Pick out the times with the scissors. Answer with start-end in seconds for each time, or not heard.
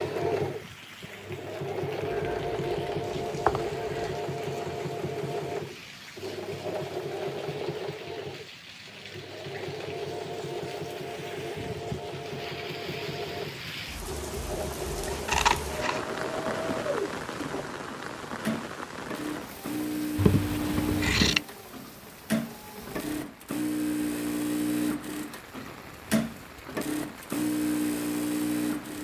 2.1-4.2, 15.1-16.0, 20.1-21.4.